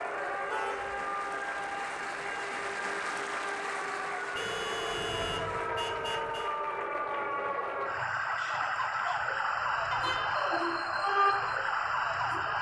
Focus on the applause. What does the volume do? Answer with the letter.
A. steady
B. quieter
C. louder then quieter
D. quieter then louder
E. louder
B.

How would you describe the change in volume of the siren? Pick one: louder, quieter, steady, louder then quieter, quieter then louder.
louder.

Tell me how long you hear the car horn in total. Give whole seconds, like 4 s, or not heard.
3 s.